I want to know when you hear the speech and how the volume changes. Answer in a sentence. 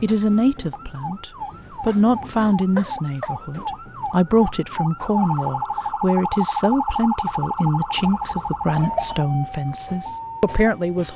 The speech can be heard from 0.0 to 11.1 s, at a steady volume.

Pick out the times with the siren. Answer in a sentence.
The siren can be heard from 0.2 to 11.1 s.